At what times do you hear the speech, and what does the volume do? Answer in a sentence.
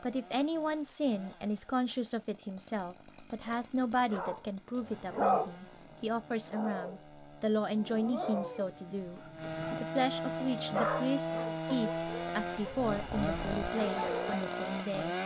You can hear the speech from 0.0 to 15.2 s, at a steady volume.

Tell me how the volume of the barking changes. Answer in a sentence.
The volume of the barking goes down, then up.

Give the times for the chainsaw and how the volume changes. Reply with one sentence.
The chainsaw can be heard from 0.0 to 15.2 s, getting louder.